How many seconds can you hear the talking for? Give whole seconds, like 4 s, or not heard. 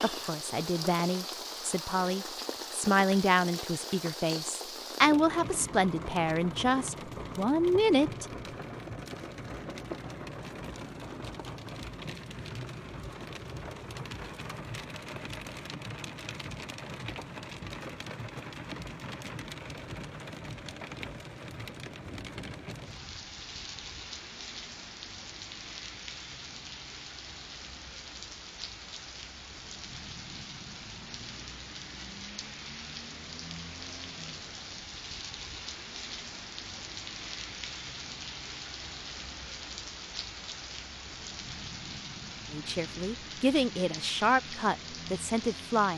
12 s.